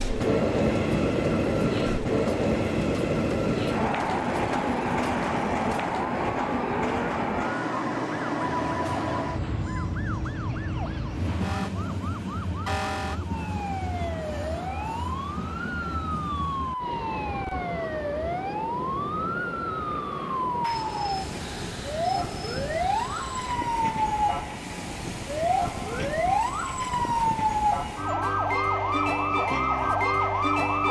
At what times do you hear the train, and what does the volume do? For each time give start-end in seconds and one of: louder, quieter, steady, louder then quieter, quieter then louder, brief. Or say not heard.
0.0-30.8 quieter.